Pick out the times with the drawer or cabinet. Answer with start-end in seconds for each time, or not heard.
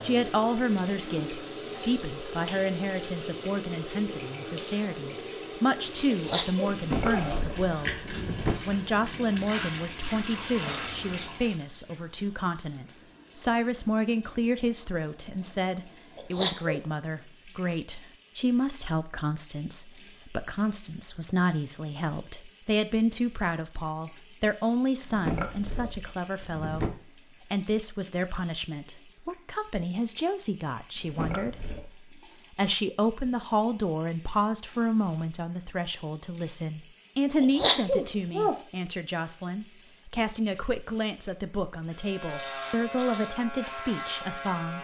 6.7-8.6, 25.0-26.9, 30.9-31.9.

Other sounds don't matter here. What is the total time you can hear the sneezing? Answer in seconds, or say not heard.
3 s.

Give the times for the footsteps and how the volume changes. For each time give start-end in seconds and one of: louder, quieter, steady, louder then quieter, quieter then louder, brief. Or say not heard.
not heard.